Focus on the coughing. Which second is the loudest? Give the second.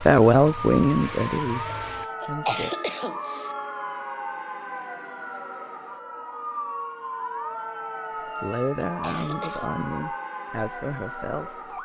3 s.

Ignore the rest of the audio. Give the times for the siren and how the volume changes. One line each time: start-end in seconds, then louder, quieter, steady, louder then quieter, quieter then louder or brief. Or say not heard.
0.0-11.8 steady.